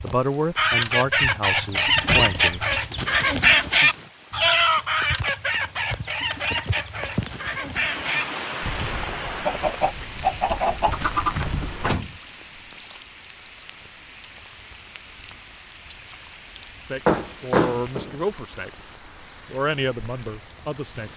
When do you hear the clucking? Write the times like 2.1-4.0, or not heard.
0.6-12.0.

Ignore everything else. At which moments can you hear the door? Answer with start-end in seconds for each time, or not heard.
1.8-2.4, 11.4-12.2, 17.1-18.1.